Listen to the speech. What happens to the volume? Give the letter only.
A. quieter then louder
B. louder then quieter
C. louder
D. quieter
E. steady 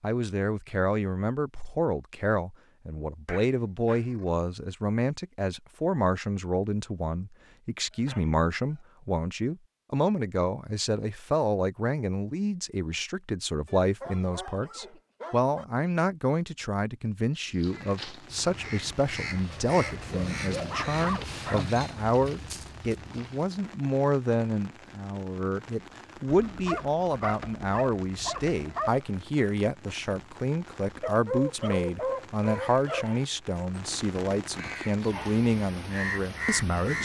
E.